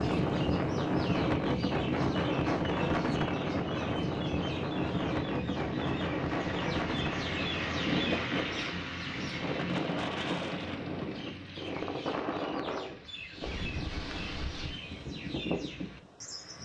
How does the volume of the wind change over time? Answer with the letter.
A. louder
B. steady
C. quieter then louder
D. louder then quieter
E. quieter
E.